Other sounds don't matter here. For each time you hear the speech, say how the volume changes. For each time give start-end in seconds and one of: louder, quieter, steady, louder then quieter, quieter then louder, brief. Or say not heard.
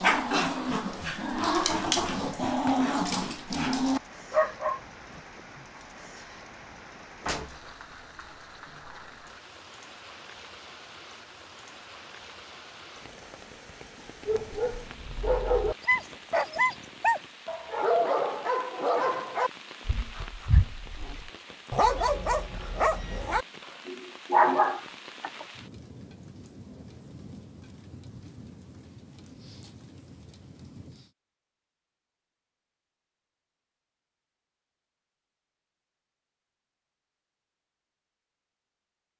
not heard.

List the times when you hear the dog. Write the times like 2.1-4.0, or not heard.
0.0-5.2, 14.2-25.4.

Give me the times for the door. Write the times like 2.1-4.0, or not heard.
7.2-7.7.